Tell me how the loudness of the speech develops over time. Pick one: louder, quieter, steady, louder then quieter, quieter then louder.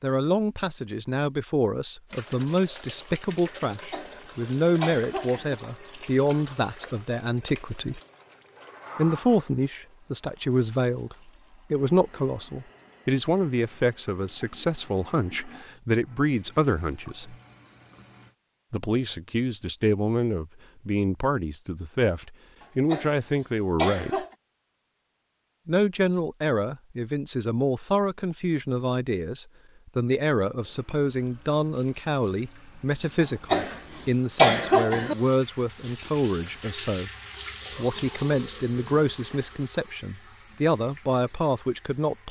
steady.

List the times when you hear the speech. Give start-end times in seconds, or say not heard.
0.0-8.0, 8.9-17.4, 18.7-24.2, 25.6-37.1, 37.8-42.2.